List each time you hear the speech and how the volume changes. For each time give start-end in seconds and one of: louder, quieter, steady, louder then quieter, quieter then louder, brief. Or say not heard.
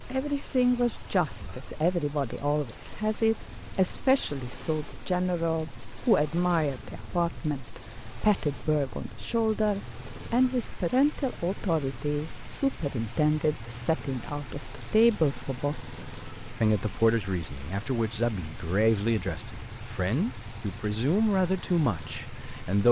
0.1-22.8 steady.